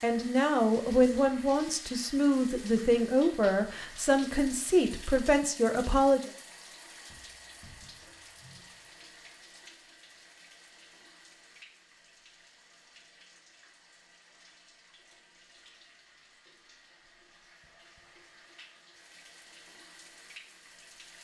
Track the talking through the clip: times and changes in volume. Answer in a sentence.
The talking can be heard from 0.0 to 6.3 s, at a steady volume.